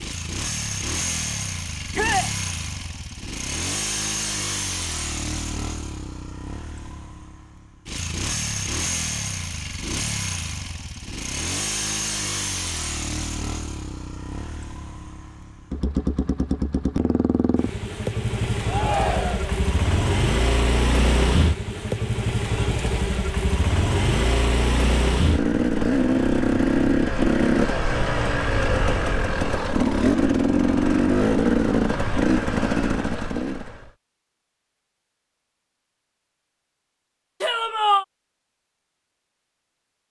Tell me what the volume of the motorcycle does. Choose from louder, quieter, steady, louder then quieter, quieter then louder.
louder.